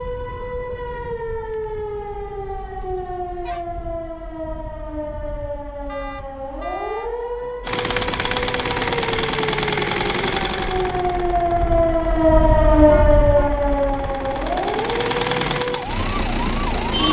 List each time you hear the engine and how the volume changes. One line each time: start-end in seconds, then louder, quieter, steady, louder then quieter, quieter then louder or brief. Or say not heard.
7.6-17.0 quieter then louder.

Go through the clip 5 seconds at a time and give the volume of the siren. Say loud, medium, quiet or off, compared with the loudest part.
medium, medium, loud, medium.